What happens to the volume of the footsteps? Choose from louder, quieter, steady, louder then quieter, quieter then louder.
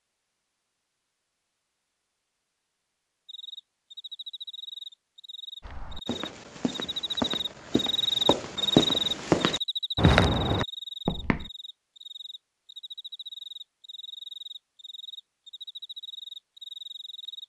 louder.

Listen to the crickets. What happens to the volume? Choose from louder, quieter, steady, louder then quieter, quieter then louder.
louder then quieter.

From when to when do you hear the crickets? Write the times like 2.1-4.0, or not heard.
3.2-17.4.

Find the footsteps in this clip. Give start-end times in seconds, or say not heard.
5.6-11.5.